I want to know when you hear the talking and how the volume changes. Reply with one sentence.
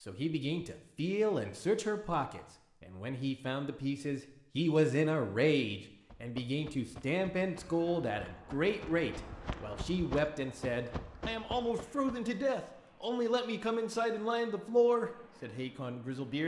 The talking can be heard from 0.1 to 16.4 s, at a steady volume.